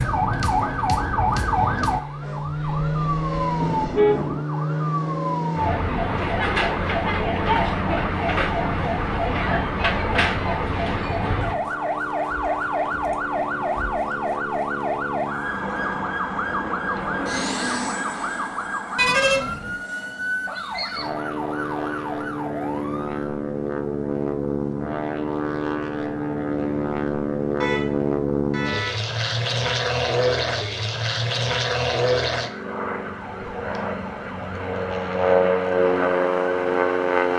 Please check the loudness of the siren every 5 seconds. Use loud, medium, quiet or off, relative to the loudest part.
loud, loud, loud, medium, medium, off, quiet, quiet.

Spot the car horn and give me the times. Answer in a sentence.
The car horn can be heard from 3.6 to 4.5 s, from 18.9 to 19.8 s and from 27.6 to 29.0 s.